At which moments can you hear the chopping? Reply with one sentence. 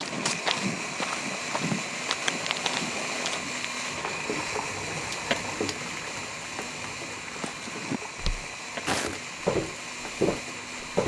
The chopping can't be heard in this clip.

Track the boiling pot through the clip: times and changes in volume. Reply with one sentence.
You can hear the boiling pot from 0.0 to 11.0 s, getting louder then quieter.